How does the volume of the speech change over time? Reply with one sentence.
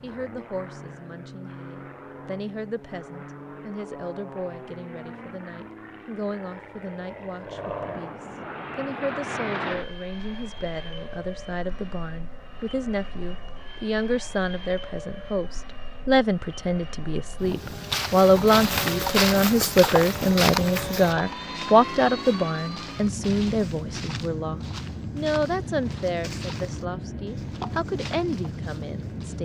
The loudness of the speech goes up, then down.